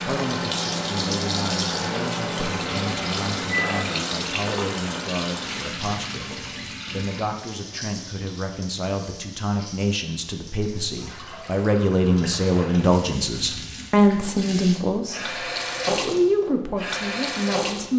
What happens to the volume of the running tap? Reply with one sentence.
The loudness of the running tap goes down, then up.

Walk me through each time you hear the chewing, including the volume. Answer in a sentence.
You can't hear the chewing here.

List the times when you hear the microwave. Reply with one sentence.
The microwave can be heard from 0.0 to 3.8 s.